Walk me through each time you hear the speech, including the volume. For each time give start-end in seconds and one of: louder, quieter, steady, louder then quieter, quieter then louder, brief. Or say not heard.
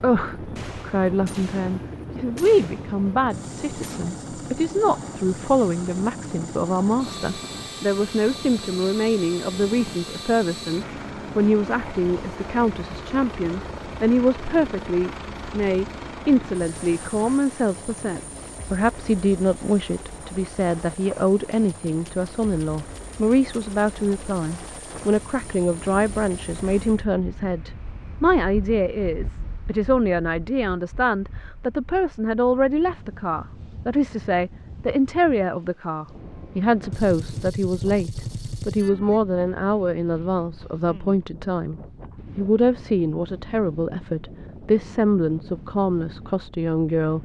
0.0-47.1 steady.